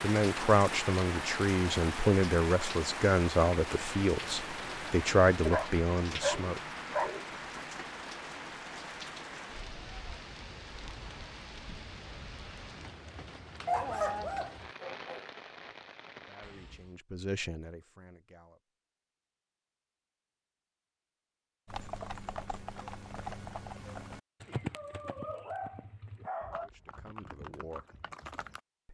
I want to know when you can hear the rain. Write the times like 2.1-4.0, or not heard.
0.0-16.9.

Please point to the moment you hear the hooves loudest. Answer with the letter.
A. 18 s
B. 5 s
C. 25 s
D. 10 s
C.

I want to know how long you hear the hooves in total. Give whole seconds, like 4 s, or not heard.
7 s.